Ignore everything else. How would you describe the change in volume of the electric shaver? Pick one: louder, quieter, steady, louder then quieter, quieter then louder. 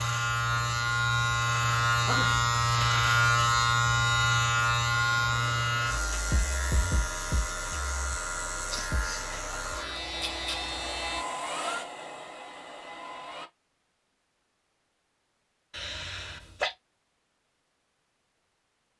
quieter.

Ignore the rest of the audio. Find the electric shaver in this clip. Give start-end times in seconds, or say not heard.
0.0-11.2.